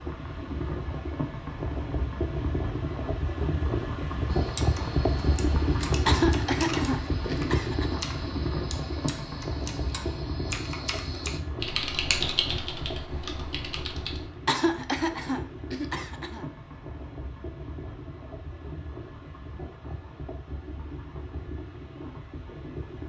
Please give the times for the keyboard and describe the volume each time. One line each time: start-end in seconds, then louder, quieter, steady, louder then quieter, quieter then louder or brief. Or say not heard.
4.3-14.3 louder.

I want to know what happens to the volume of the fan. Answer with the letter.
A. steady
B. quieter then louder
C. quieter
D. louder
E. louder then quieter
C.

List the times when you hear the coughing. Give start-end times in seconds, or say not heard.
6.0-8.1, 14.4-16.4.